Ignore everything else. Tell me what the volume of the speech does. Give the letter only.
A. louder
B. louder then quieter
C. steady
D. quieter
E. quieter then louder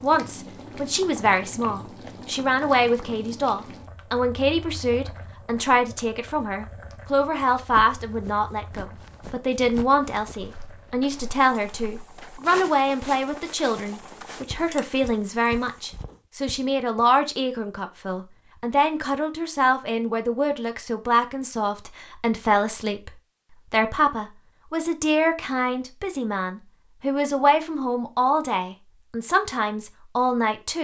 C.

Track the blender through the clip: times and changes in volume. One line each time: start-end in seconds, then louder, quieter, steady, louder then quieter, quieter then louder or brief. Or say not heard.
not heard.